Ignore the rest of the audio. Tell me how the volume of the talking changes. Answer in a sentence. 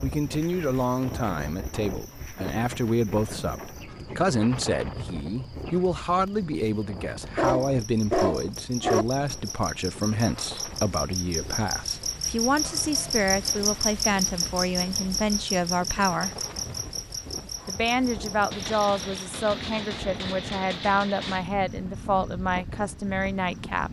The loudness of the talking stays about the same.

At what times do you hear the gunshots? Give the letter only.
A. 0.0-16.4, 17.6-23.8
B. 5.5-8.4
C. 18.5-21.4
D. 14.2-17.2
C.